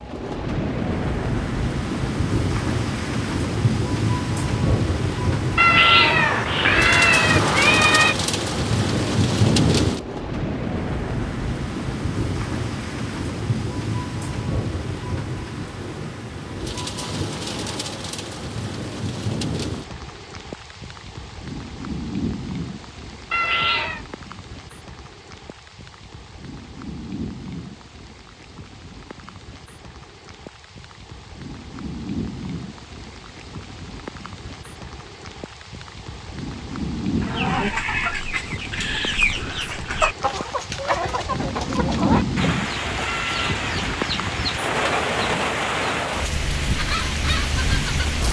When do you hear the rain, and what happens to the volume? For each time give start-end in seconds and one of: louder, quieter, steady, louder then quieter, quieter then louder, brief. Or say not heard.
0.0-48.2 quieter then louder.